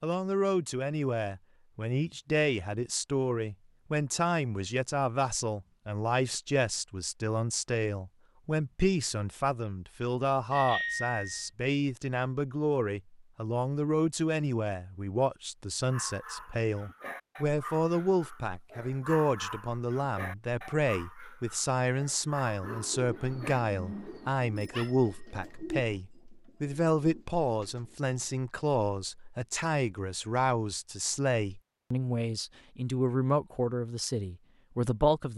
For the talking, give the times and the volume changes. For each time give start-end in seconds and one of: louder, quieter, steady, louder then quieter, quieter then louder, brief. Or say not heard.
0.0-35.3 steady.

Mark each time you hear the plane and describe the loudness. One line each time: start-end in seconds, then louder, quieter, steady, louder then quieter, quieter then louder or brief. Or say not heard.
not heard.